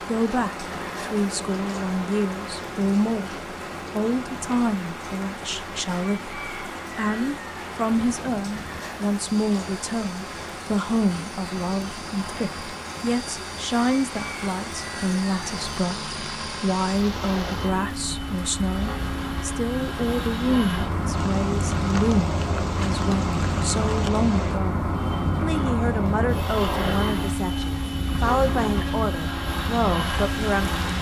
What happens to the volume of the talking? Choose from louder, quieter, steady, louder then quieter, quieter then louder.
steady.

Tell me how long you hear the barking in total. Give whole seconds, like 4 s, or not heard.
not heard.